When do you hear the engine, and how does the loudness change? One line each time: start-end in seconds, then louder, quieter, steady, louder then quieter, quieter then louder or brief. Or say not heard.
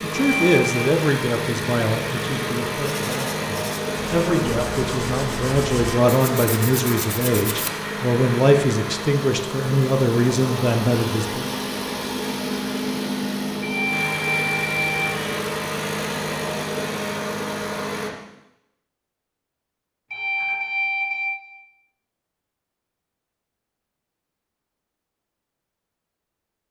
0.0-18.1 steady.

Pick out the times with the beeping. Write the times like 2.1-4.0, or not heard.
0.1-0.8, 13.6-15.4, 20.1-21.3.